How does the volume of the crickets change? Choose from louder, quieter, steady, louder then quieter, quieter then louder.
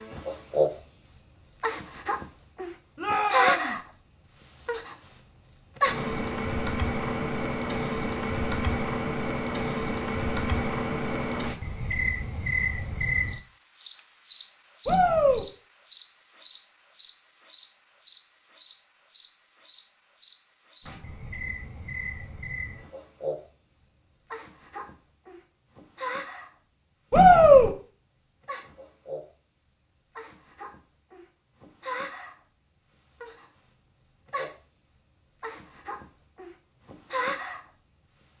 quieter.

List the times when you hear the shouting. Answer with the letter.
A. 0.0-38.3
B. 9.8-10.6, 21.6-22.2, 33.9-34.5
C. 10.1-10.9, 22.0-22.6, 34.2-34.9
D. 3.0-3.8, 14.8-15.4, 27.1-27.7
D.